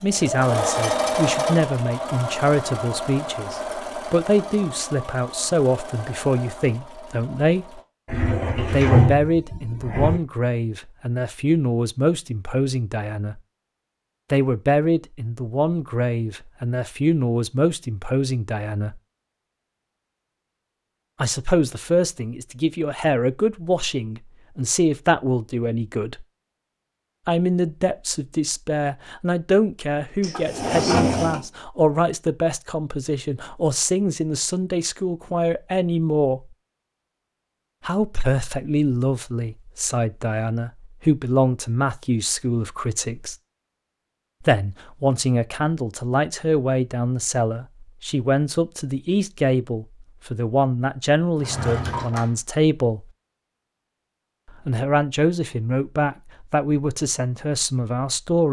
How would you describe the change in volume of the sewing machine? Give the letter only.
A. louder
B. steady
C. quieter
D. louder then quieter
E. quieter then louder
C.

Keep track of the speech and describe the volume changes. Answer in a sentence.
The volume of the speech stays about the same.